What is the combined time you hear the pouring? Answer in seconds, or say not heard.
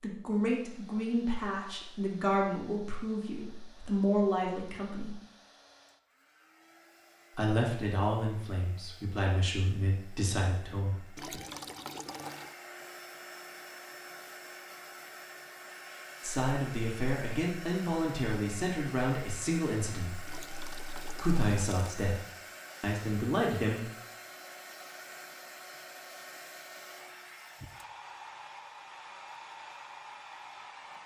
3 s.